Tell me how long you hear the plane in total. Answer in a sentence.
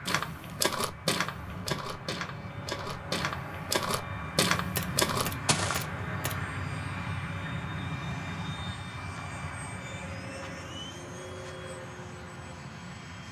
You can hear the plane for 13 seconds altogether.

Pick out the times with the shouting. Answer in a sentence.
The shouting can't be heard in this clip.